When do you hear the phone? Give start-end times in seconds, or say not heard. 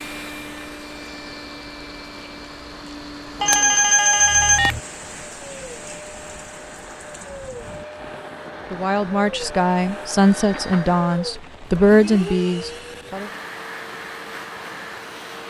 3.4-4.8, 10.3-10.9.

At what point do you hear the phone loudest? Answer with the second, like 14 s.
4 s.